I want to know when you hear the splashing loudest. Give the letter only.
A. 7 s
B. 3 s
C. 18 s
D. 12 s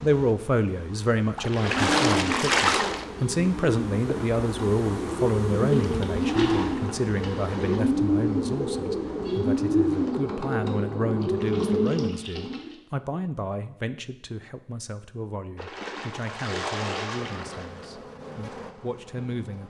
B.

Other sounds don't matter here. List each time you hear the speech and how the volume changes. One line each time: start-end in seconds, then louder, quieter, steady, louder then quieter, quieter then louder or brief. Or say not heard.
0.0-19.6 quieter.